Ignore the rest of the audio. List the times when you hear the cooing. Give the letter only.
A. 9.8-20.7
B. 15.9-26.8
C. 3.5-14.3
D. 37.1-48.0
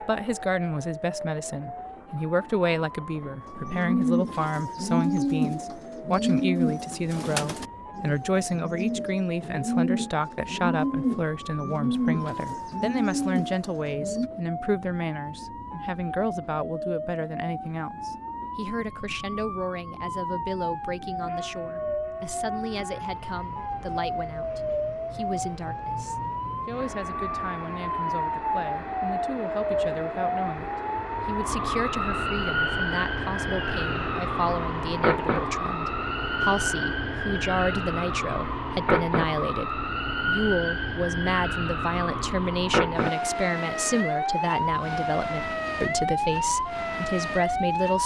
C.